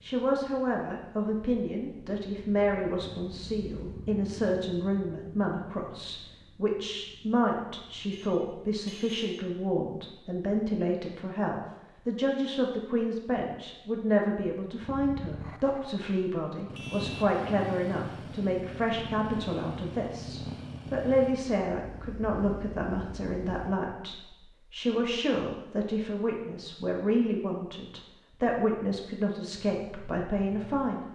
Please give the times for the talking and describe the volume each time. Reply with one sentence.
The talking can be heard from 0.0 to 31.1 s, at a steady volume.